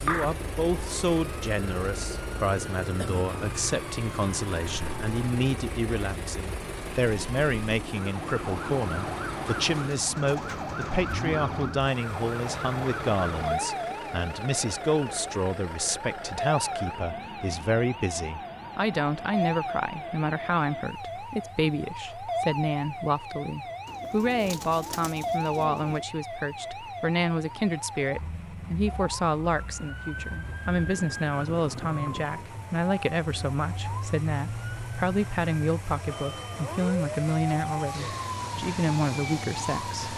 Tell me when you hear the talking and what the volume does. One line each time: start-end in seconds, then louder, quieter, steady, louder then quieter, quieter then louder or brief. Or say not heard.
0.0-40.1 steady.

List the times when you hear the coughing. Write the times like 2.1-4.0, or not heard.
not heard.